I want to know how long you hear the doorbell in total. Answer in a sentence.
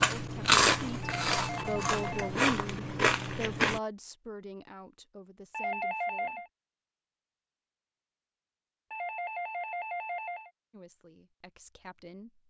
The doorbell can be heard for 4 seconds in total.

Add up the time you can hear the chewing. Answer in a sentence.
The chewing can be heard for 4 seconds in total.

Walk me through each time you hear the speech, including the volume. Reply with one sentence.
The speech can be heard from 0.0 to 6.5 s, getting louder then quieter; and briefly from 10.7 to 12.4 s.